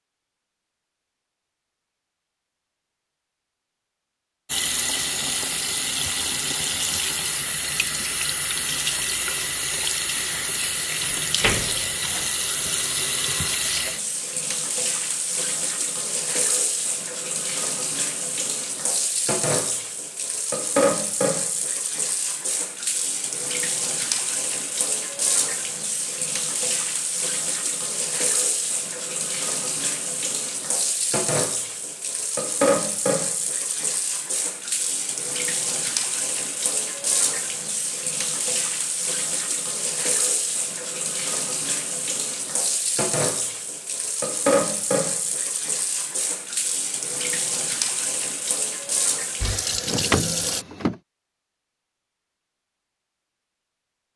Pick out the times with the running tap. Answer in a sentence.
The running tap can be heard from 4.5 to 50.6 s.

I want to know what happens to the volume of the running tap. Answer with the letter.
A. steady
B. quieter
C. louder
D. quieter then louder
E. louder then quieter
A.